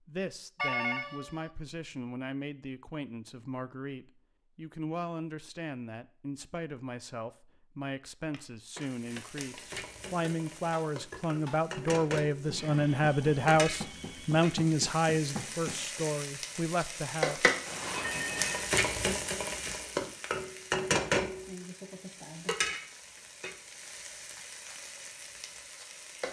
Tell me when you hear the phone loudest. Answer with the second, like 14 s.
1 s.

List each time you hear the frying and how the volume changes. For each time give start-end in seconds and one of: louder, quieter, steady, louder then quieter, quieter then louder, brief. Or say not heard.
8.8-26.2 louder then quieter.